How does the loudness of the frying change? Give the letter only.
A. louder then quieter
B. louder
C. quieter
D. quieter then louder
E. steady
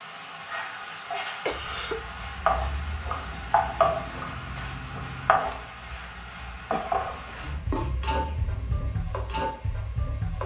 A.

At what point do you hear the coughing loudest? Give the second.
2 s.